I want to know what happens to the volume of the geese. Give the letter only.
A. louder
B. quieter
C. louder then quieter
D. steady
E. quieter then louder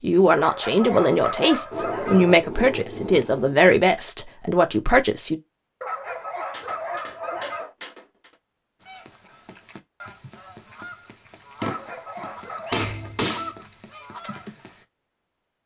A.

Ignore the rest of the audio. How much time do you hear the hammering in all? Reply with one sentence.
The hammering can be heard for 6 seconds in total.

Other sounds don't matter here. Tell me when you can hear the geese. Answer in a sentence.
The geese can be heard from 8.8 to 14.8 s.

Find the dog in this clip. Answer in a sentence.
The dog can be heard from 0.3 to 2.4 s, from 5.8 to 7.8 s and from 11.6 to 13.2 s.